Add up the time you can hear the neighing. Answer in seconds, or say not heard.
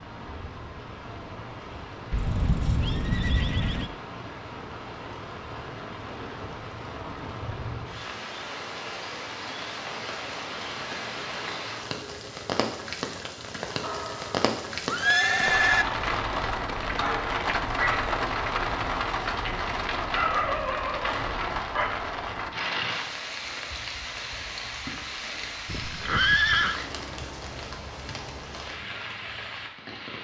5 s.